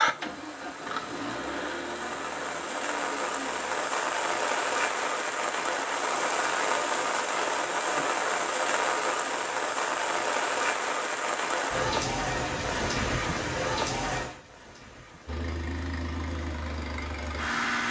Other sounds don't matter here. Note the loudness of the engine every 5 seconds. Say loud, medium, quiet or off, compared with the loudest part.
loud, off, off, loud.